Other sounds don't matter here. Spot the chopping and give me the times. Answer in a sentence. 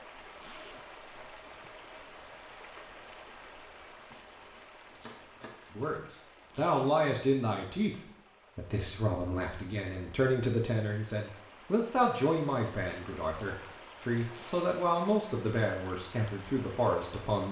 The chopping can be heard from 4.1 to 5.7 s.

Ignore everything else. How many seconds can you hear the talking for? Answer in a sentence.
You can hear the talking for 12 seconds altogether.